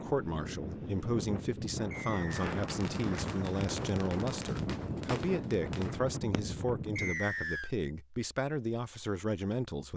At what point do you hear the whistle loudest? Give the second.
7 s.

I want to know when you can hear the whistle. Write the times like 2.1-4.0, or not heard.
1.9-2.5, 7.0-7.7.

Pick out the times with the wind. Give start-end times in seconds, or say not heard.
0.0-7.2.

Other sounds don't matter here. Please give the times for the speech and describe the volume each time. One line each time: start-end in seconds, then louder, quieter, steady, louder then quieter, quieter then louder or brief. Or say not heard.
0.0-9.9 steady.